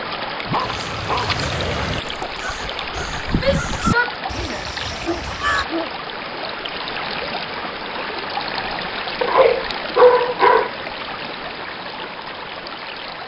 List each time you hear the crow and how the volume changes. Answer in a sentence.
You can hear the crow from 0.6 to 5.7 s, getting louder then quieter.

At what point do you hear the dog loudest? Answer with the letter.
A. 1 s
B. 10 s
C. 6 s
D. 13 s
B.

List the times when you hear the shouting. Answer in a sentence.
You can hear the shouting from 3.4 to 4.7 s.